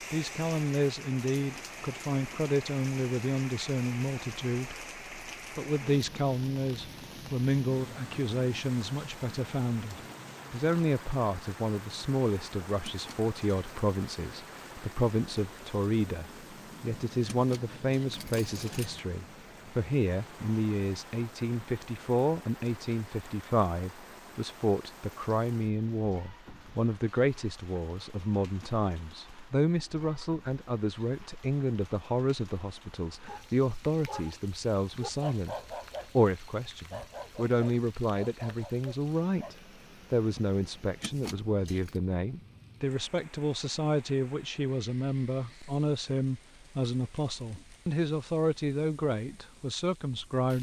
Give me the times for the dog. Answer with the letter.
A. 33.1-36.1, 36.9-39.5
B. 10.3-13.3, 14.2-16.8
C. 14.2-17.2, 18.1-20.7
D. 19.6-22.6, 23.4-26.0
A.